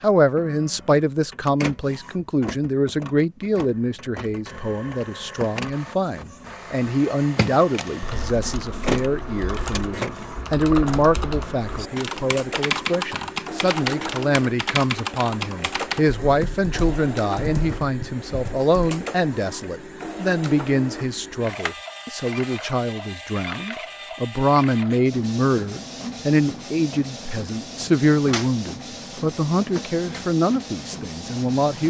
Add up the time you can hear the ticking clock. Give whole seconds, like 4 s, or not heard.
not heard.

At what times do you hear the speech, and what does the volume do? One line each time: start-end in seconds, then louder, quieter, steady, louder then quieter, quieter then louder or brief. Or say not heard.
0.0-31.8 steady.